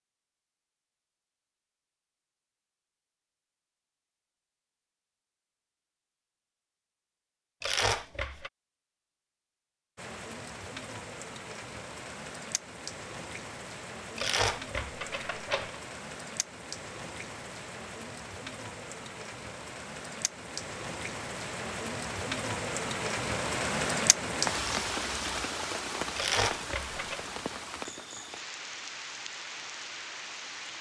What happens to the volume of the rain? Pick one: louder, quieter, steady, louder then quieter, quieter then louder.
louder then quieter.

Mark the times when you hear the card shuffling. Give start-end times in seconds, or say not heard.
7.6-8.5, 14.2-15.8, 26.1-27.2.